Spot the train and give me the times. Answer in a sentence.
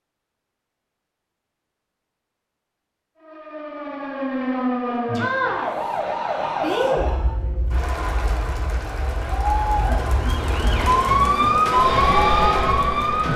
The train can be heard from 11.7 to 13.3 s.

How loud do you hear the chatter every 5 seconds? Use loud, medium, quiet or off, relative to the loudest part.
off, loud, loud.